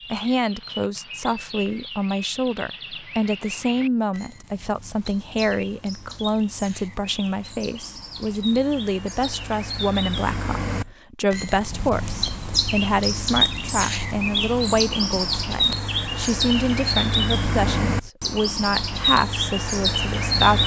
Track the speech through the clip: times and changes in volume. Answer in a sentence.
You can hear the speech from 0.1 to 20.6 s, at a steady volume.